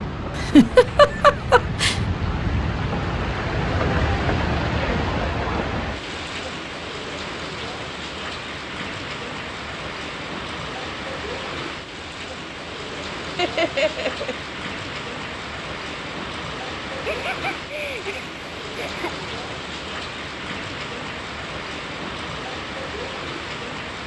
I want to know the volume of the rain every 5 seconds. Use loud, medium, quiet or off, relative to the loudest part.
loud, loud, medium, medium, medium.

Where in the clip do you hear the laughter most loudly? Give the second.
1 s.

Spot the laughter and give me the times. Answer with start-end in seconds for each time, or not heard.
0.3-2.0, 13.3-14.3, 16.9-19.3.